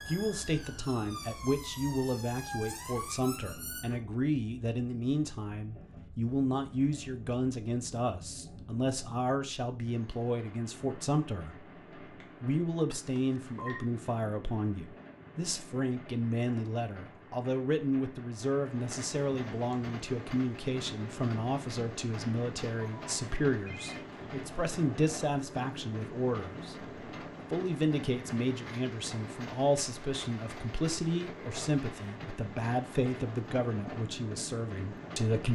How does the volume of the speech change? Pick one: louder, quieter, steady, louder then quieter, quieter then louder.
steady.